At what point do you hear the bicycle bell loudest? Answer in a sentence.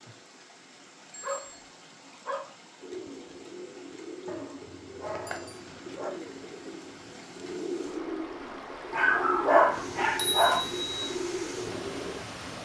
The loudest moment of the bicycle bell is at 10 seconds.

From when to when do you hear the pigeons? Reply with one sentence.
You can hear the pigeons from 2.8 to 12.2 s.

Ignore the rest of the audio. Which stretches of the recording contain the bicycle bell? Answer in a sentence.
You can hear the bicycle bell from 1.1 to 1.7 s, from 5.2 to 5.7 s and from 9.8 to 11.1 s.